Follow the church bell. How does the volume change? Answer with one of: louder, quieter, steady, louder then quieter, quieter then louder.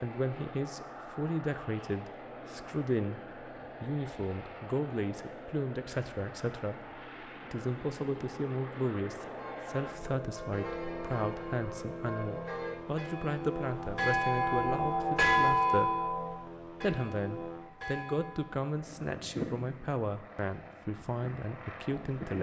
louder then quieter.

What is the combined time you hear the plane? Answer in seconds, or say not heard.
22 s.